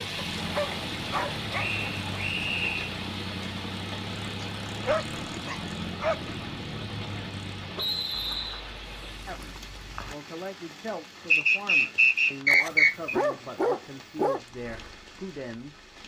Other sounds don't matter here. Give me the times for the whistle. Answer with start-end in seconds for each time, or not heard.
1.6-2.9, 7.8-8.7, 11.3-13.2.